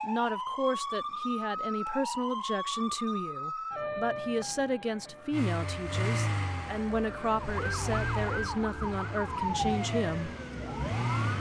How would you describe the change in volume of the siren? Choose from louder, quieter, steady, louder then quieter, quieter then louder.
quieter then louder.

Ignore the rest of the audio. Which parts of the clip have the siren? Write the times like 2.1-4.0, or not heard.
0.0-11.3.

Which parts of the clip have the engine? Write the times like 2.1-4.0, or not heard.
5.3-11.3.